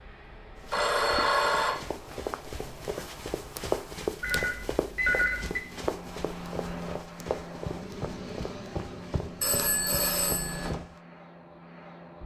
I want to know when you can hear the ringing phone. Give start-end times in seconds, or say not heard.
0.7-1.8, 4.2-5.6, 9.4-10.8.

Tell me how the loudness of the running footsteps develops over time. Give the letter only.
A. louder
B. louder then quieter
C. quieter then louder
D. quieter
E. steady
B.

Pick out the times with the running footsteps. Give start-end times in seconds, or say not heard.
0.6-11.0.